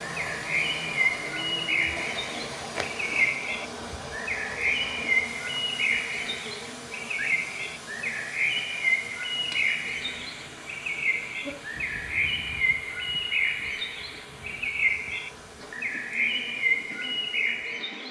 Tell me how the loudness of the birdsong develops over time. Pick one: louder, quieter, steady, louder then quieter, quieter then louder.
steady.